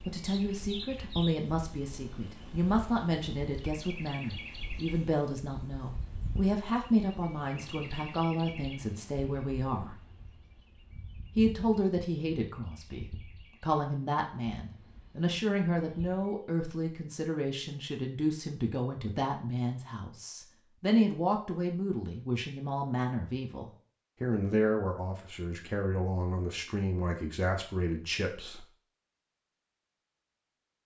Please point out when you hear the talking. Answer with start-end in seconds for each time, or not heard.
0.0-9.9, 11.3-28.6.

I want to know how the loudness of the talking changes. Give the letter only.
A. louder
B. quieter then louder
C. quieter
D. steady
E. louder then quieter
D.